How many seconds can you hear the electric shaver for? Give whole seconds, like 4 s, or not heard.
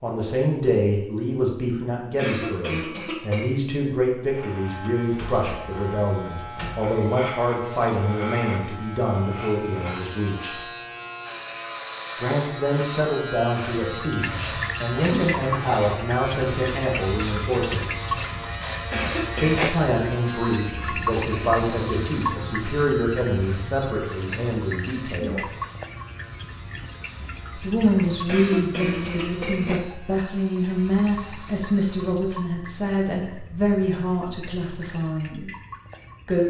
28 s.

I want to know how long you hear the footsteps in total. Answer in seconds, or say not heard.
not heard.